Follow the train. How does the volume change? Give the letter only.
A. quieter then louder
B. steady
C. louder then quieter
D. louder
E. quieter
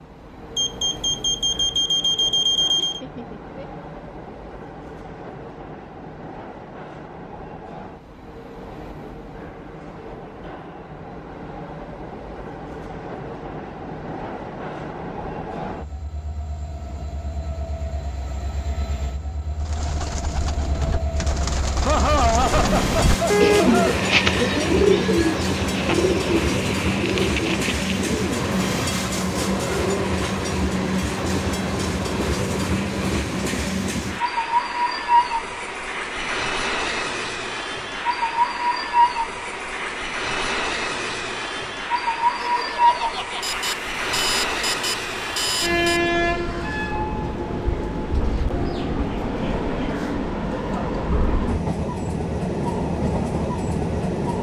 D.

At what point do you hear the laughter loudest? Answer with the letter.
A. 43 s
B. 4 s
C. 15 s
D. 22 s
D.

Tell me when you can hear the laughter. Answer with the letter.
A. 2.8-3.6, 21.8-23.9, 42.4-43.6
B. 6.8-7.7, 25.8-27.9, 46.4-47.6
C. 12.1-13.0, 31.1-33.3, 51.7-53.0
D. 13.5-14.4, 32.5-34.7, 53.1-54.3
A.